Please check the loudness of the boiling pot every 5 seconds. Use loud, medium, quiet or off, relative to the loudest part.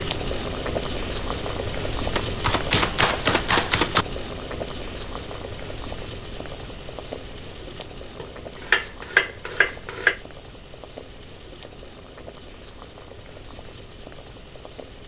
loud, medium, quiet.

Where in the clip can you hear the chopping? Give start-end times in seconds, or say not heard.
2.1-4.0, 8.2-10.2.